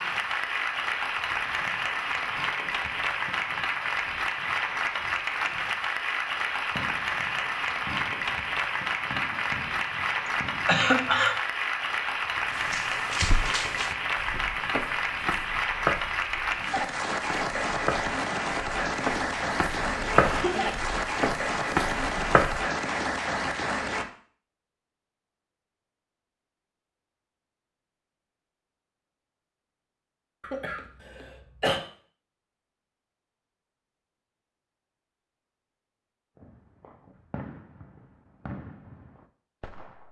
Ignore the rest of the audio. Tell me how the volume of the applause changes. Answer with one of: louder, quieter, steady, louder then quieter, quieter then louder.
steady.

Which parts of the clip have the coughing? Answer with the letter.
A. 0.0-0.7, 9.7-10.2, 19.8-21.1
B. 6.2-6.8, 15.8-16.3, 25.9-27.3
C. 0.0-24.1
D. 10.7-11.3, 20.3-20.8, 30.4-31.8
D.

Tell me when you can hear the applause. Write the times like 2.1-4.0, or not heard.
0.0-24.1.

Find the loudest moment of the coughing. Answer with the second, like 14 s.
11 s.